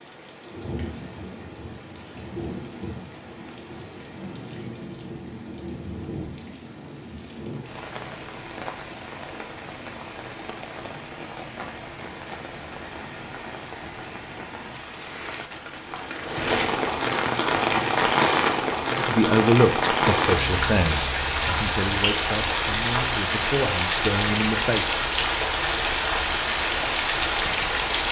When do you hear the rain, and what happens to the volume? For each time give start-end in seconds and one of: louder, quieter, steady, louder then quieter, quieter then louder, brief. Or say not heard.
0.0-28.0 louder.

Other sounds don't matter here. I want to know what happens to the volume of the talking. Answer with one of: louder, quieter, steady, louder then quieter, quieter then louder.
quieter then louder.